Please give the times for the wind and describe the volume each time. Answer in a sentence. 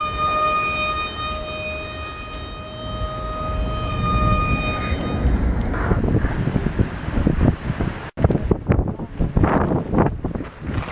The wind can be heard from 0.0 to 10.8 s, getting louder.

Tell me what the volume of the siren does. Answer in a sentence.
The volume of the siren goes down, then up.